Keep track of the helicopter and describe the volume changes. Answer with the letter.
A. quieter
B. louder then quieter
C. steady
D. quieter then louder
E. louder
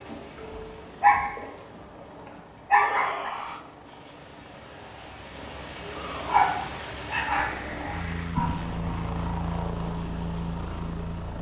E.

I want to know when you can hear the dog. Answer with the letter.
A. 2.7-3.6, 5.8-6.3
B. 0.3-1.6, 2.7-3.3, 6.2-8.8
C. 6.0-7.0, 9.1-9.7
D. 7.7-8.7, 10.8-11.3
B.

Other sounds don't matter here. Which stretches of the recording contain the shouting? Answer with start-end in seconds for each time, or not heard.
2.7-3.6, 5.8-6.3.